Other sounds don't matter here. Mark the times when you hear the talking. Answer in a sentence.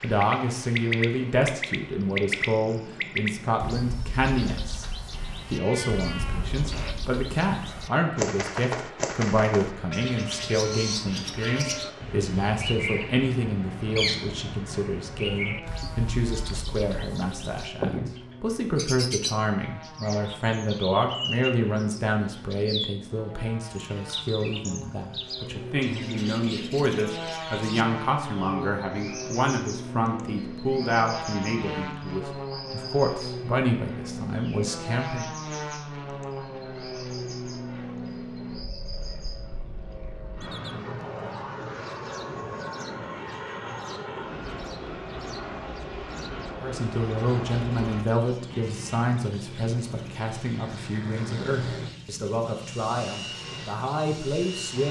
You can hear the talking from 0.0 to 4.8 s, from 5.5 to 35.3 s and from 46.6 to 54.8 s.